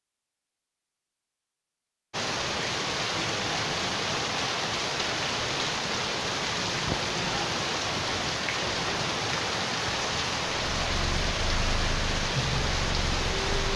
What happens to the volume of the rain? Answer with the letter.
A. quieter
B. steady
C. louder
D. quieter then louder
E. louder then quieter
B.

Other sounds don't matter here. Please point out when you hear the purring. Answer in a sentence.
You can hear the purring from 10.7 to 13.7 s.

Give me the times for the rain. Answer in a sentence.
You can hear the rain from 2.1 to 13.7 s.